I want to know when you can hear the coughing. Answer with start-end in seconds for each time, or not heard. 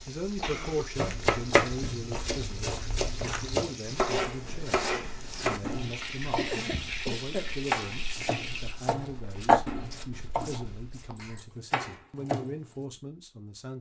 0.4-0.9, 6.3-7.5, 11.2-12.1.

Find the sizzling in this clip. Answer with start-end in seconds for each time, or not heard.
0.0-8.8.